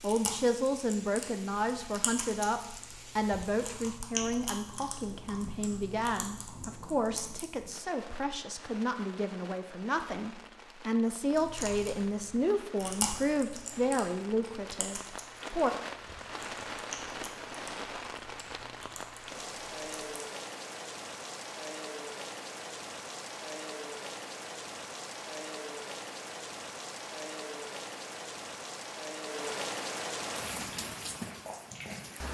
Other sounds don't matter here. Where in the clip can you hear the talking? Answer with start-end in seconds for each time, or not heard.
0.0-15.7.